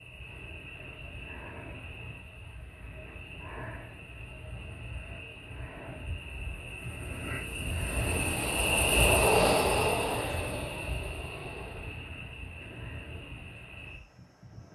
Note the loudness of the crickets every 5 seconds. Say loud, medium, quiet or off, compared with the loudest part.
quiet, loud, medium.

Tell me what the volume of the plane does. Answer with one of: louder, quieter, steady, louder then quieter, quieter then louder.
louder then quieter.